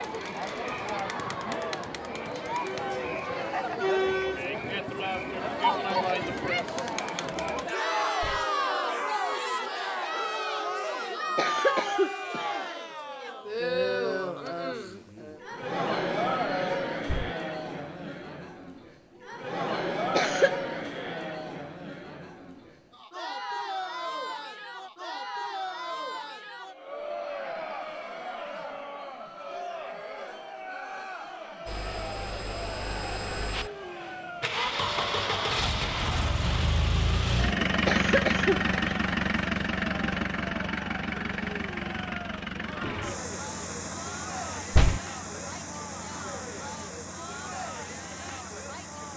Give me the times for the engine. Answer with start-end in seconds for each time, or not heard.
31.6-49.1.